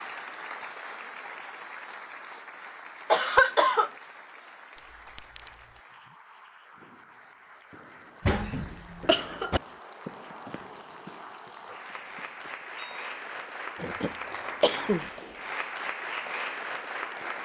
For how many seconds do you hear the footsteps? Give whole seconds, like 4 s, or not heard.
not heard.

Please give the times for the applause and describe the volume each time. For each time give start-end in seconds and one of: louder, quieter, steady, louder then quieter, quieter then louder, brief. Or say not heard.
0.0-17.4 quieter then louder.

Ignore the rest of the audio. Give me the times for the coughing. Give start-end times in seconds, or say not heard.
3.1-3.9, 8.2-9.6, 13.8-15.1.